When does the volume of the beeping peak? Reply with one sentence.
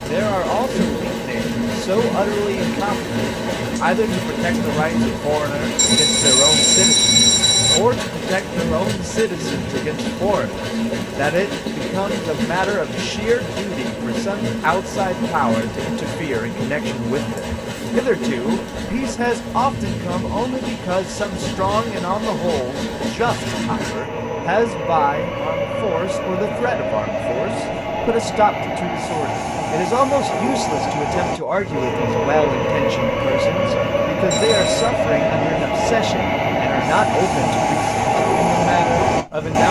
The loudest moment of the beeping is at 7 seconds.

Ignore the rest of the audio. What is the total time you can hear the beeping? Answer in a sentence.
You can hear the beeping for 3 seconds altogether.